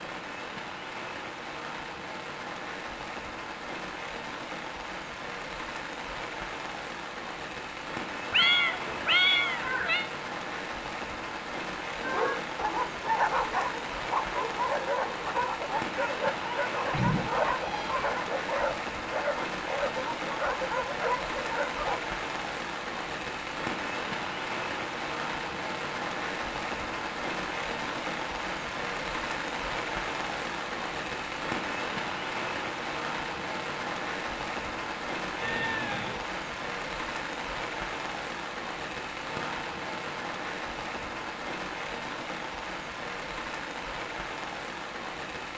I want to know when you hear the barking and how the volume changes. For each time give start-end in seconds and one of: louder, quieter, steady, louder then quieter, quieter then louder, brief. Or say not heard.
12.0-22.0 steady.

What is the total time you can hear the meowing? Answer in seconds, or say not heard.
4 s.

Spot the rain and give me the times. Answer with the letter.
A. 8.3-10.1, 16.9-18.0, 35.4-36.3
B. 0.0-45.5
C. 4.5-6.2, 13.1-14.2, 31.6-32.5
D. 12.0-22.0
B.